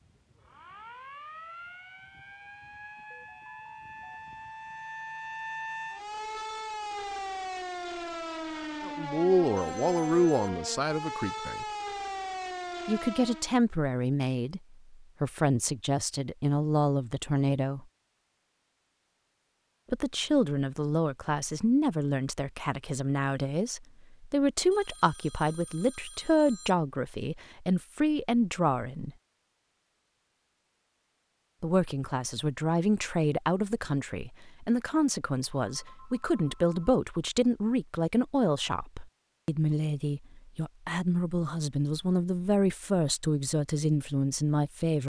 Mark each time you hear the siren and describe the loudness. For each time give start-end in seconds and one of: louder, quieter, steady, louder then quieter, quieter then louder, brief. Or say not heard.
0.0-13.6 louder.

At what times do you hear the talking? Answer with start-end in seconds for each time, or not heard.
8.8-11.7, 12.8-17.9, 19.9-29.1, 31.6-45.0.